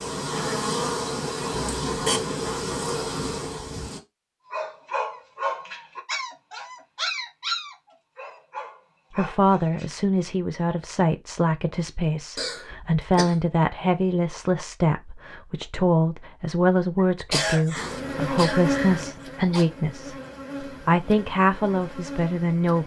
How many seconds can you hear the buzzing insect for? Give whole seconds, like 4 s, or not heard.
9 s.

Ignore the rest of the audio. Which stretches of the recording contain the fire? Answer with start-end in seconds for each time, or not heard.
not heard.